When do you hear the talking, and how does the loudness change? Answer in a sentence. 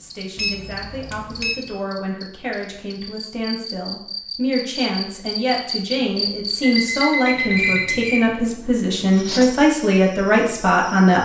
The talking can be heard from 0.0 to 11.2 s, getting louder.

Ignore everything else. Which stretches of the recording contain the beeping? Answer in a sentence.
You can hear the beeping from 0.3 to 1.6 s and from 6.6 to 8.1 s.